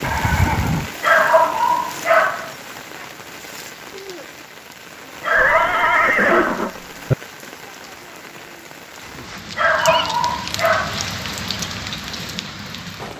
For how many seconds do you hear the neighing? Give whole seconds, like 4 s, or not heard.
4 s.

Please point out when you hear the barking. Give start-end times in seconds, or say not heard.
1.0-2.5, 5.2-6.7, 9.6-11.1.